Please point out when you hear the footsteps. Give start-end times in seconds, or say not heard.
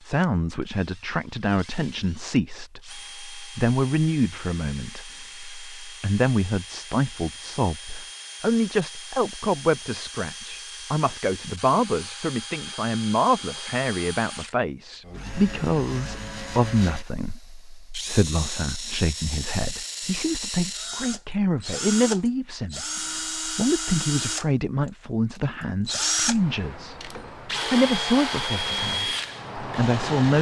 not heard.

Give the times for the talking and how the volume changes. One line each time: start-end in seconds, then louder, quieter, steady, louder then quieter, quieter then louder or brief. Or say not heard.
0.1-30.3 steady.